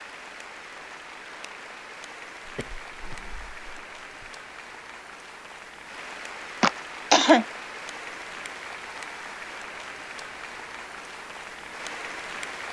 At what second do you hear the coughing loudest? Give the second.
7 s.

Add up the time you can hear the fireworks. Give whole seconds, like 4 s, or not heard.
not heard.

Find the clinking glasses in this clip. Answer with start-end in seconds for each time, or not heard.
not heard.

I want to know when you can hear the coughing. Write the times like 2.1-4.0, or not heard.
2.5-4.3, 6.6-7.5.